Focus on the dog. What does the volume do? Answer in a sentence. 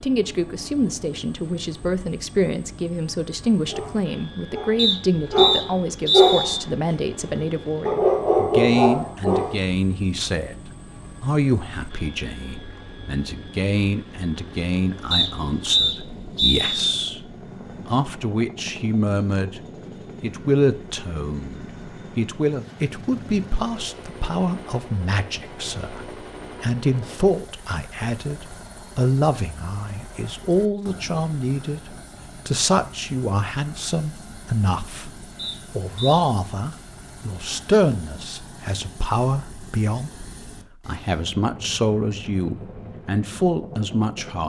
The loudness of the dog goes up.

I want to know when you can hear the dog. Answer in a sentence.
The dog can be heard from 3.6 to 9.6 s.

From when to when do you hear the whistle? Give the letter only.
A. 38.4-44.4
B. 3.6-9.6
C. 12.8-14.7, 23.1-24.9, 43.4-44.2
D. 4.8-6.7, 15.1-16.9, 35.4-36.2
D.